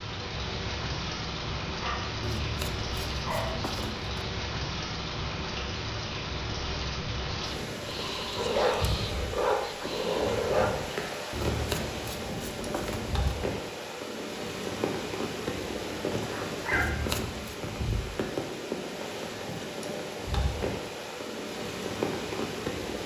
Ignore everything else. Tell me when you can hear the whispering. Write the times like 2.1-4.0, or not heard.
7.8-10.2.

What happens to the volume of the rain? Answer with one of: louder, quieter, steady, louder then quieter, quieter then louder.
steady.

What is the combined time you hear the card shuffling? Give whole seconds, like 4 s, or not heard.
5 s.